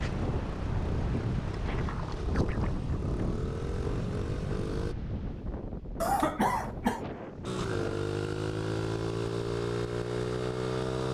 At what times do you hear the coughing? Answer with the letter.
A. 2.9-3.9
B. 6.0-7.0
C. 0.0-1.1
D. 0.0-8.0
B.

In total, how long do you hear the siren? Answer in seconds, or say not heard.
not heard.